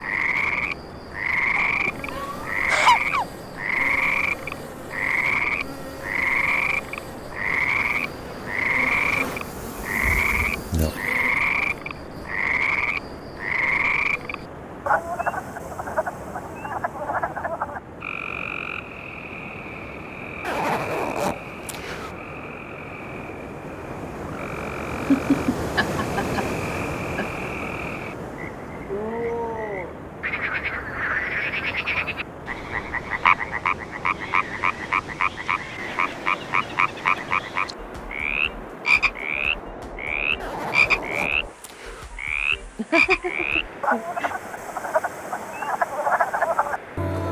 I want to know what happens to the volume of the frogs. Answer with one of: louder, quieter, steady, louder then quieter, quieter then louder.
quieter then louder.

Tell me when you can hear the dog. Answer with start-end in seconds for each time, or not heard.
not heard.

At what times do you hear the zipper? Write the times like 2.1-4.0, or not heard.
20.4-22.1, 40.4-42.1.